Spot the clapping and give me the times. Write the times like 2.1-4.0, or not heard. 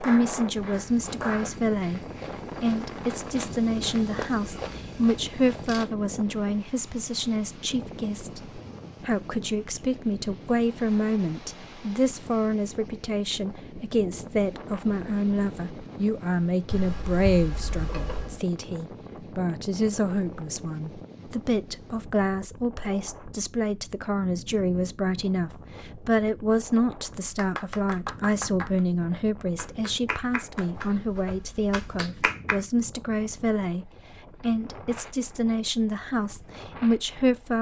0.0-1.6, 27.2-32.6.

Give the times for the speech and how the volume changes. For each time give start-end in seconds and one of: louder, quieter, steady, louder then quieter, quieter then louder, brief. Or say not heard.
0.0-37.5 steady.